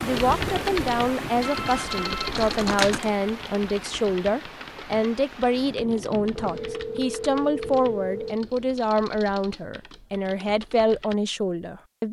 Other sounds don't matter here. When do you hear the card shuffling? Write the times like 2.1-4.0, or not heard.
2.1-3.0.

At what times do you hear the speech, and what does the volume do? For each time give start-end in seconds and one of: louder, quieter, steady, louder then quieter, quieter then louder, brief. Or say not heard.
0.0-12.0 steady.